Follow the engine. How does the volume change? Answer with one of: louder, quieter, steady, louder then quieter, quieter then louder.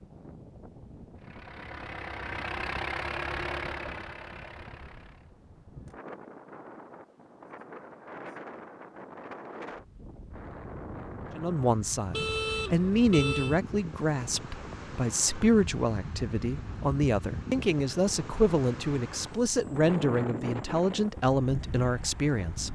louder then quieter.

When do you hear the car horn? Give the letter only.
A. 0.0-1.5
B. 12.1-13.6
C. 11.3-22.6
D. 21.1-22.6
B.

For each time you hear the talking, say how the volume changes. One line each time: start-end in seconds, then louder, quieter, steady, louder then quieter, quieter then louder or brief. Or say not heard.
11.3-22.6 steady.